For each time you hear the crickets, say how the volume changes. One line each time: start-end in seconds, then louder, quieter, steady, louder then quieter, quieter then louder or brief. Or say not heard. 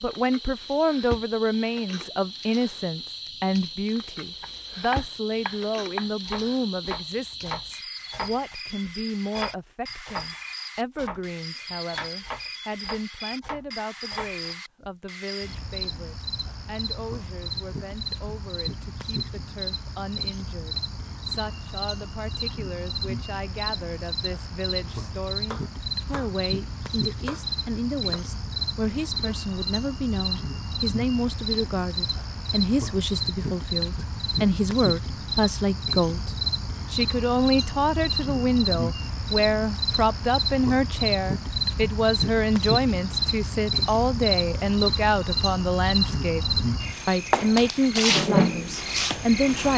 0.0-49.7 louder.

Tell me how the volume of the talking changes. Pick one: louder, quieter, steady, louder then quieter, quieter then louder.
quieter then louder.